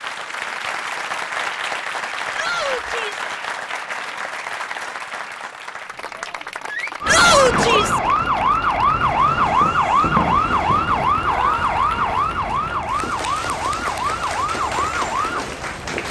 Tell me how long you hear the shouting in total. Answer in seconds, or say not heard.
3 s.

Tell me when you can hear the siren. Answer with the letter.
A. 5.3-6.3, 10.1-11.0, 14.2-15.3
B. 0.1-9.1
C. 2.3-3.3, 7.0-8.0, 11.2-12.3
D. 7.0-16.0
D.